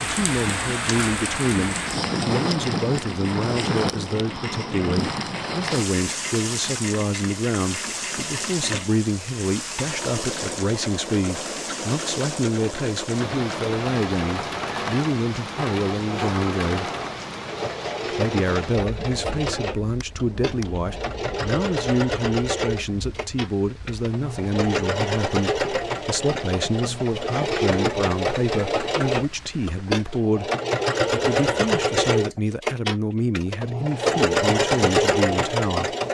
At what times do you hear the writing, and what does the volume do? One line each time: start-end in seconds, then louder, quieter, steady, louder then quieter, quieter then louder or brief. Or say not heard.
not heard.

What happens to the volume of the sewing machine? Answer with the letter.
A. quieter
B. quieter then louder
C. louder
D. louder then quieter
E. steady
C.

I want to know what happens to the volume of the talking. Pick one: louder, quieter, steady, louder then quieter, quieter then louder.
steady.